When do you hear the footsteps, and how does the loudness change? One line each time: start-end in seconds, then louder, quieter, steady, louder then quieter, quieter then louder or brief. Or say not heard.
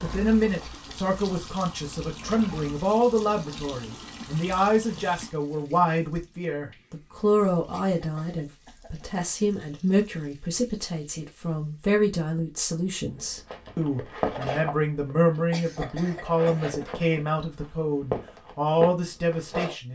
13.4-19.8 quieter then louder.